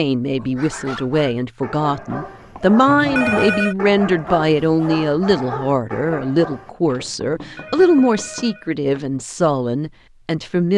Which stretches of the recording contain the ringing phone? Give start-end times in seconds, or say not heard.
2.9-3.8, 7.3-8.7.